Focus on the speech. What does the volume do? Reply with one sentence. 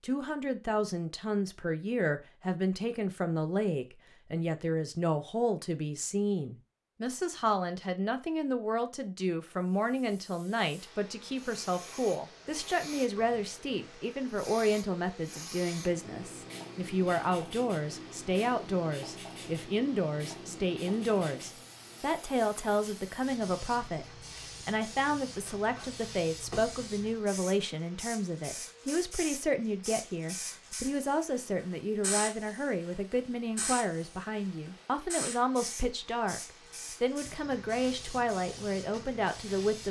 The volume of the speech stays about the same.